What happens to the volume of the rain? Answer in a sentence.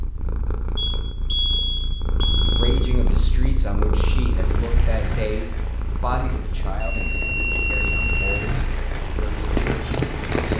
The loudness of the rain goes down, then up.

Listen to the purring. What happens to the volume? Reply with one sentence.
The loudness of the purring goes up, then down.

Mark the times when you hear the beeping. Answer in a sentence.
The beeping can be heard from 0.8 to 2.6 s and from 6.8 to 8.4 s.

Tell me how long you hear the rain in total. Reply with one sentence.
The rain can be heard for 6 seconds in total.